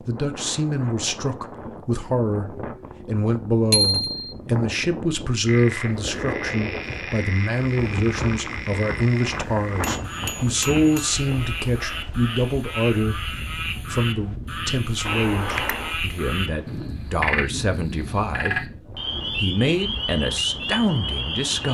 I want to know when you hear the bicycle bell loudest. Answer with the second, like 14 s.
4 s.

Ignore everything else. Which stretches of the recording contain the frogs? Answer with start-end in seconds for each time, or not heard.
5.5-21.6.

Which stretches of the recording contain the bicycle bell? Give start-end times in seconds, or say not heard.
3.7-4.3, 9.8-11.2, 15.1-15.9.